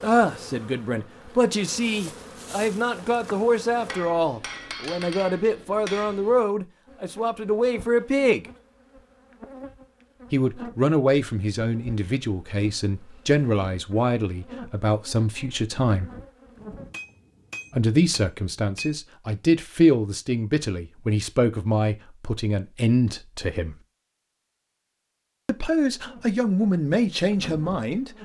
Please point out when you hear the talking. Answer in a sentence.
The talking can be heard from 0.0 to 8.4 s, from 10.3 to 16.1 s, from 17.7 to 23.8 s and from 25.4 to 28.1 s.